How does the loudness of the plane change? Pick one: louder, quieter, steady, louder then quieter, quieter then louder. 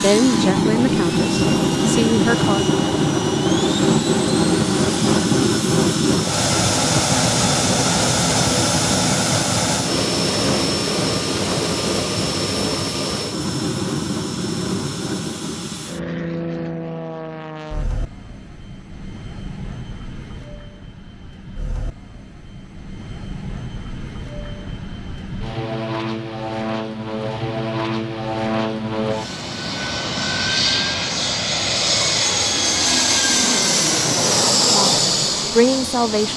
quieter then louder.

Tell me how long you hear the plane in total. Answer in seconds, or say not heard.
36 s.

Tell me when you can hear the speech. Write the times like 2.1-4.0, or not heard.
0.0-2.8, 34.5-36.3.